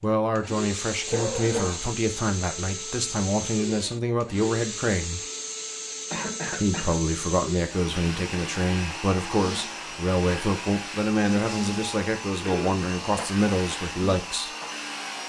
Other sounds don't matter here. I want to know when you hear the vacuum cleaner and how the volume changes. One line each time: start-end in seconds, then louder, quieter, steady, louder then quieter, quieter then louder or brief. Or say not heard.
0.0-15.2 steady.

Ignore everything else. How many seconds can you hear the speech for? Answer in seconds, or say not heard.
13 s.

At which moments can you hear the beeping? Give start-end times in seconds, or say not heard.
not heard.